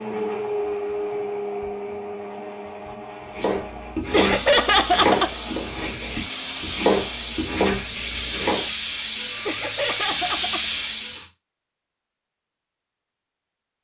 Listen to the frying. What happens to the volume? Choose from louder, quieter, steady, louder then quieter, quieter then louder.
louder.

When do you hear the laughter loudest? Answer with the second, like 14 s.
5 s.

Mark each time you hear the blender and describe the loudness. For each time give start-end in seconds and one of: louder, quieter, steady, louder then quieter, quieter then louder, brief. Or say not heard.
0.0-7.5 quieter.